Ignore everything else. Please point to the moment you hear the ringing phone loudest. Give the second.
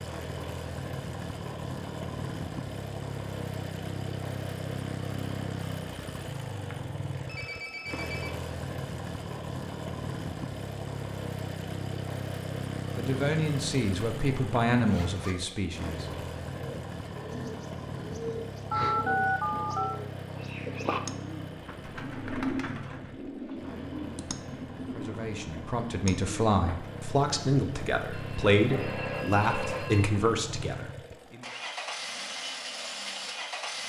19 s.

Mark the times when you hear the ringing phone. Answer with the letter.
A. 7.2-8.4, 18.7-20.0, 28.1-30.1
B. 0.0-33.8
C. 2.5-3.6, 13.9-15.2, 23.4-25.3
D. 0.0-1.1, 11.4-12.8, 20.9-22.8
A.